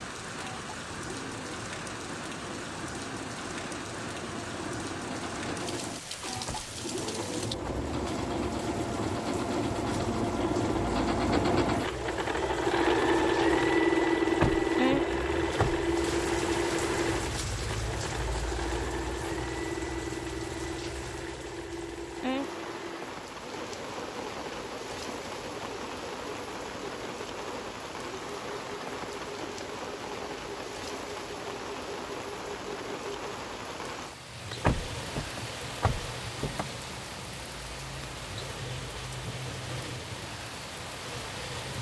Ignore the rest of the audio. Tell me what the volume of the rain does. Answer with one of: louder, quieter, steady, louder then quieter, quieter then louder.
steady.